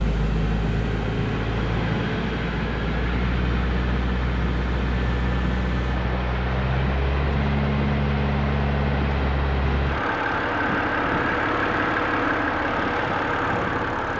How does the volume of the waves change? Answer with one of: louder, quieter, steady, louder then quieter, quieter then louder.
steady.